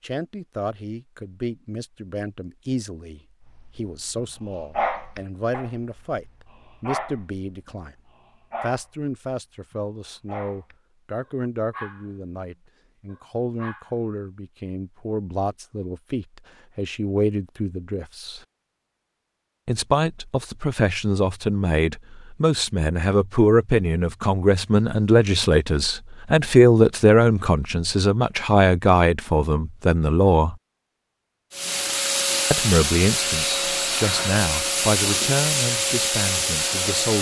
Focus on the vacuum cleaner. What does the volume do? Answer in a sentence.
The volume of the vacuum cleaner stays about the same.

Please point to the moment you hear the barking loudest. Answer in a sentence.
The loudest moment of the barking is at 5 seconds.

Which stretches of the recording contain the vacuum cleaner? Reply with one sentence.
The vacuum cleaner can be heard from 31.5 to 37.1 s.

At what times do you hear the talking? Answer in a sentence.
The talking can be heard from 0.0 to 8.0 s, from 8.6 to 18.4 s, from 19.6 to 30.6 s and from 32.5 to 37.1 s.